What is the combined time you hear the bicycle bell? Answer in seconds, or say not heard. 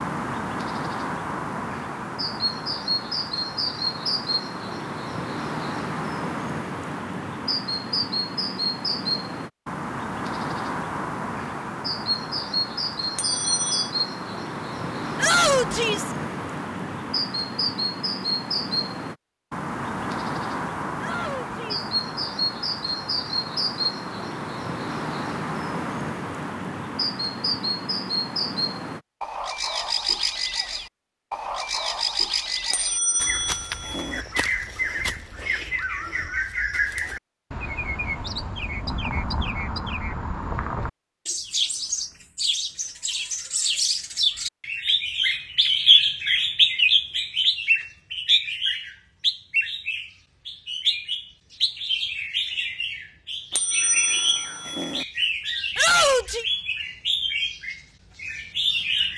4 s.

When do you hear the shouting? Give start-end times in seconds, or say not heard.
15.2-16.1, 20.9-21.9, 55.8-56.5.